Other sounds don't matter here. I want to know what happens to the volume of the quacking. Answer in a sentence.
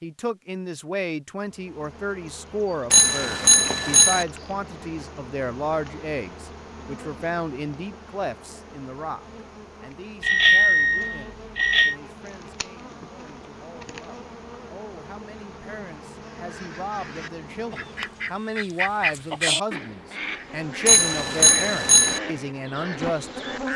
The loudness of the quacking goes up, then down.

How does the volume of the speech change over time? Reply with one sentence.
The volume of the speech goes down, then up.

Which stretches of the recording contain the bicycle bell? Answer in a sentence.
You can hear the bicycle bell from 2.9 to 4.2 s, from 10.2 to 11.9 s and from 20.9 to 22.2 s.